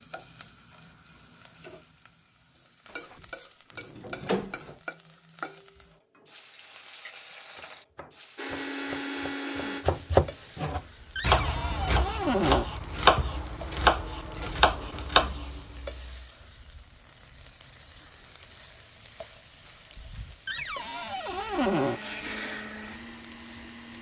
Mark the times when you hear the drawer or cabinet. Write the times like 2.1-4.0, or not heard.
2.9-4.8, 11.2-12.7, 20.4-22.0.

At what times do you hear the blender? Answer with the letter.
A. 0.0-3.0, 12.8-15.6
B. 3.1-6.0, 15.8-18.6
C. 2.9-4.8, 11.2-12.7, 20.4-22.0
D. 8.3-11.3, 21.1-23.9
D.